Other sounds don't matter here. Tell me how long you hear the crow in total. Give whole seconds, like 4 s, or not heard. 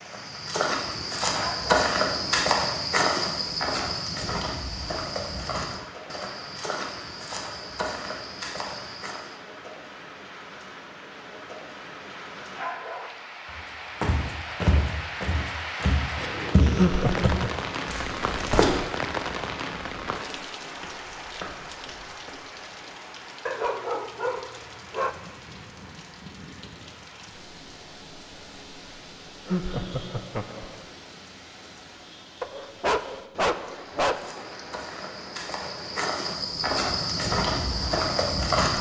not heard.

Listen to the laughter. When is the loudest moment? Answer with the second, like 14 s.
17 s.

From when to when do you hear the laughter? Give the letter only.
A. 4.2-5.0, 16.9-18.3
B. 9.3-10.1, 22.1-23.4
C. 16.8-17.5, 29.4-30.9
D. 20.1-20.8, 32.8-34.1
C.